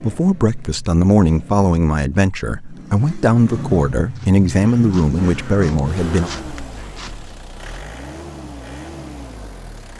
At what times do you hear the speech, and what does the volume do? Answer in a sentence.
The speech can be heard from 0.0 to 6.3 s, at a steady volume.